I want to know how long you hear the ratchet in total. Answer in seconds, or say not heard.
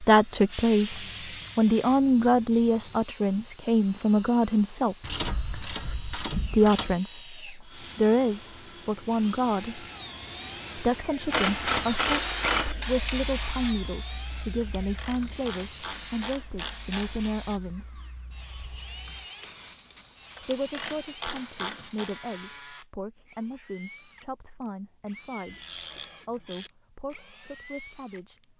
11 s.